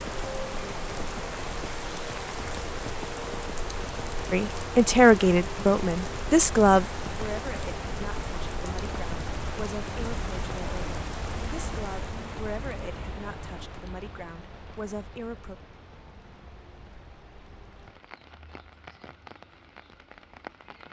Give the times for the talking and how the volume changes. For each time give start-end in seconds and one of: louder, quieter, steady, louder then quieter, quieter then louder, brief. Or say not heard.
4.3-15.6 quieter.